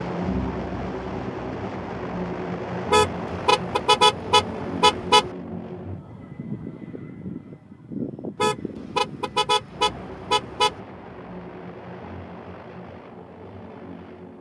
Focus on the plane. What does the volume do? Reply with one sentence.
The volume of the plane goes down.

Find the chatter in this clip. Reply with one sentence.
You can't hear the chatter here.